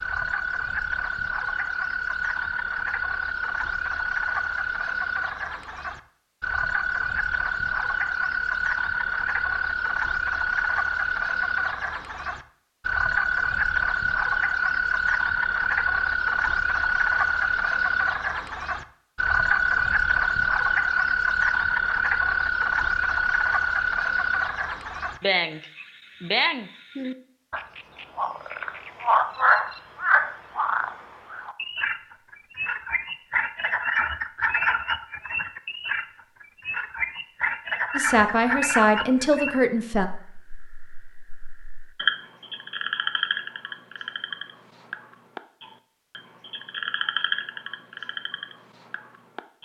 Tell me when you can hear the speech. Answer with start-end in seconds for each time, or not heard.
38.0-40.1.